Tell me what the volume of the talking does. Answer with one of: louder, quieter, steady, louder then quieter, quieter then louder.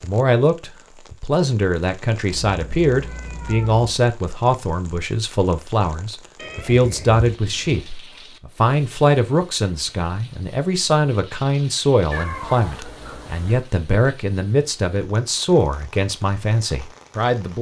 steady.